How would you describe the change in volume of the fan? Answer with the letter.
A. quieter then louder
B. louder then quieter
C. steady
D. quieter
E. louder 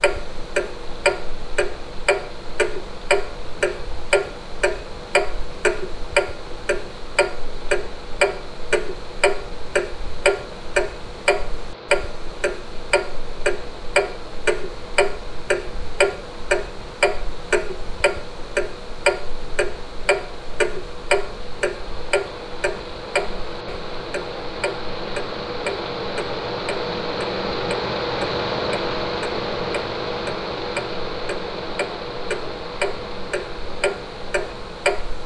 E.